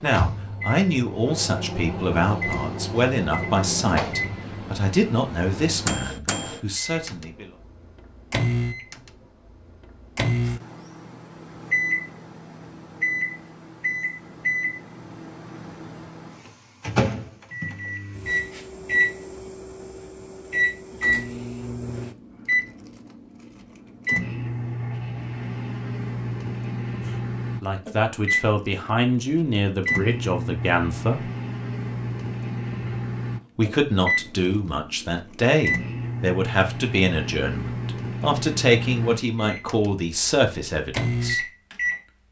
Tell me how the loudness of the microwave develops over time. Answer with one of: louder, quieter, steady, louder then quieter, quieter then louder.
steady.